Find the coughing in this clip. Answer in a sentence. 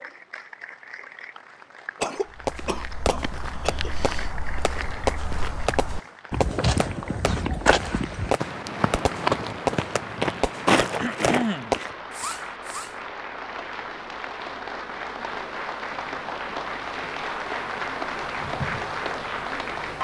You can hear the coughing from 2.0 to 3.9 s and from 10.7 to 11.8 s.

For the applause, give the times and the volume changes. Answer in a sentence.
The applause can be heard from 0.0 to 19.9 s, getting louder.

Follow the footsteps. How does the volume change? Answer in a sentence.
The volume of the footsteps goes up.